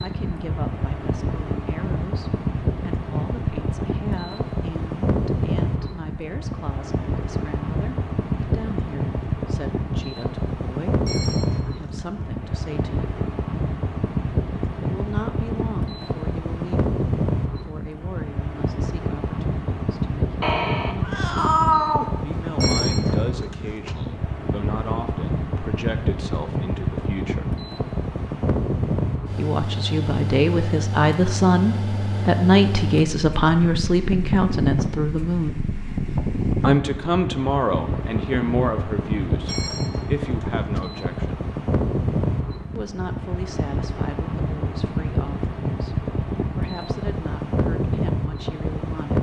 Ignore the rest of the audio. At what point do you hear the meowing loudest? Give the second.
22 s.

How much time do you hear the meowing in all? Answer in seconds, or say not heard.
2 s.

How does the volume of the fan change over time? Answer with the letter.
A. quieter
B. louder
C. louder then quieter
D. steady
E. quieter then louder
D.